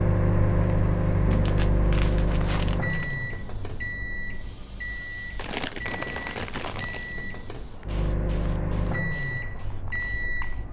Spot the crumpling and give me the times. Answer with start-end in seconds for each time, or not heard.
1.3-3.1, 5.3-7.2.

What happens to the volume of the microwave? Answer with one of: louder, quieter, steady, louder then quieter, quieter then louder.
quieter then louder.